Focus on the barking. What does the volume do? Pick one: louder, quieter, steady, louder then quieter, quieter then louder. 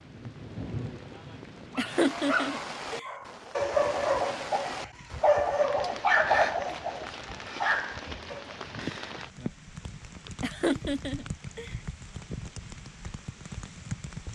louder then quieter.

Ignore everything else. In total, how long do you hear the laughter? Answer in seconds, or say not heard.
3 s.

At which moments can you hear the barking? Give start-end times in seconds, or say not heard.
1.7-8.6.